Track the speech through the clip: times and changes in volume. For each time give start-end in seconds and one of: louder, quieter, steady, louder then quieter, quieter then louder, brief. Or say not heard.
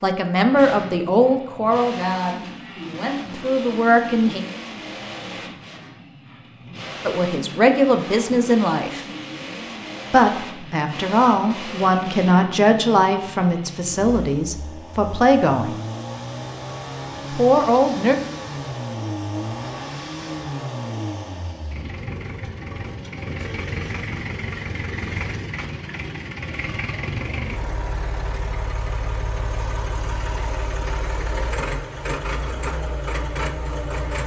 0.0-4.4 quieter then louder
7.0-9.1 brief
10.1-15.8 steady
17.3-18.1 brief.